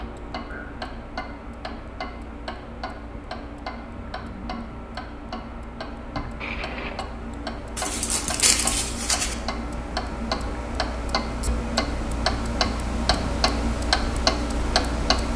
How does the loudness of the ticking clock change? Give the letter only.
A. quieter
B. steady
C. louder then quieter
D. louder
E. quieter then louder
D.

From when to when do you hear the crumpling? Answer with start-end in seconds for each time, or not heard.
7.8-9.3.